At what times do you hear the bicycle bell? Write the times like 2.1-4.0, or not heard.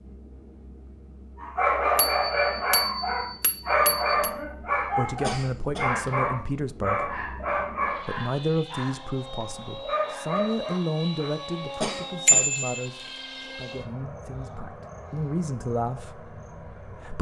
1.9-4.3, 12.2-12.8.